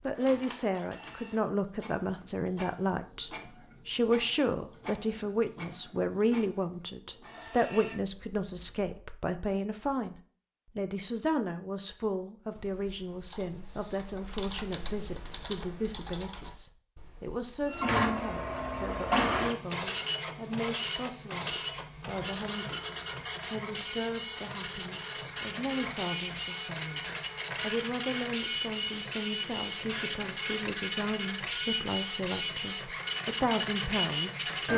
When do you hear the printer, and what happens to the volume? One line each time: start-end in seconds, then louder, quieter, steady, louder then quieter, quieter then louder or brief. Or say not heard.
0.0-8.9 steady
17.6-34.7 steady.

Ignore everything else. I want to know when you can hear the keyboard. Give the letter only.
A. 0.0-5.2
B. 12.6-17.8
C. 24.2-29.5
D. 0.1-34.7
B.